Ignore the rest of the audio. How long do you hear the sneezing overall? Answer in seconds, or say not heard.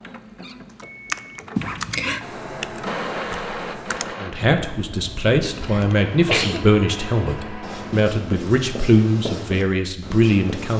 2 s.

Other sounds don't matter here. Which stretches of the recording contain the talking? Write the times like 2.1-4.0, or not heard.
4.2-10.7.